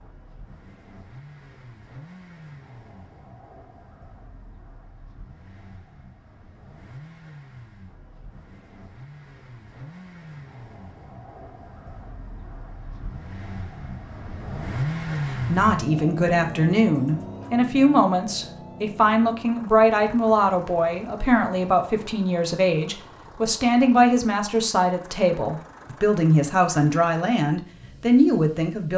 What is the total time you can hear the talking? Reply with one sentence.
You can hear the talking for 14 seconds altogether.